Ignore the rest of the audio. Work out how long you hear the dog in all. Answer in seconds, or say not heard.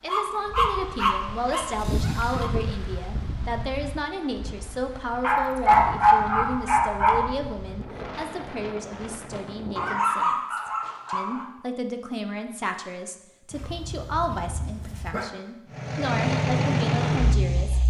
8 s.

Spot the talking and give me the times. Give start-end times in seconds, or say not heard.
0.0-17.8.